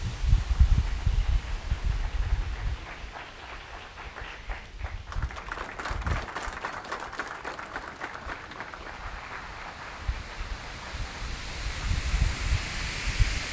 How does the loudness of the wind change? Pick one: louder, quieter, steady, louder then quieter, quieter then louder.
quieter then louder.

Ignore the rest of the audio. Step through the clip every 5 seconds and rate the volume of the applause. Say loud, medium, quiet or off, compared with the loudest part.
medium, loud, medium.